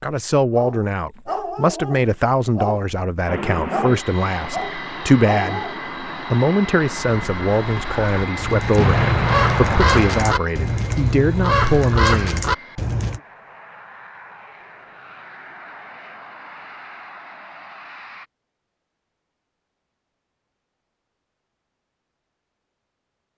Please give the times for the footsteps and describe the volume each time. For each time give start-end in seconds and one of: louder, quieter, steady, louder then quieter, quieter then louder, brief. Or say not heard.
not heard.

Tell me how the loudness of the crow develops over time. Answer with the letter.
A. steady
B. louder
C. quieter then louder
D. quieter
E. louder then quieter
B.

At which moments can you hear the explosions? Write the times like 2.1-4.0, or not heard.
8.8-10.1.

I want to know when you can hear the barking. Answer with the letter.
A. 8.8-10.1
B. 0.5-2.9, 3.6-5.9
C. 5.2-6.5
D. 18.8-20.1
B.